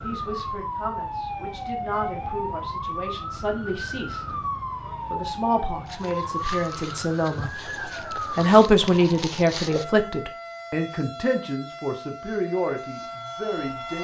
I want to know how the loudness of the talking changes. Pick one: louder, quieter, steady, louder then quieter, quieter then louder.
louder then quieter.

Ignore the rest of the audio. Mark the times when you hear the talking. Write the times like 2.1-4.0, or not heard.
0.0-4.3, 5.1-13.9.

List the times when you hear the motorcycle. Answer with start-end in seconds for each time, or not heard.
not heard.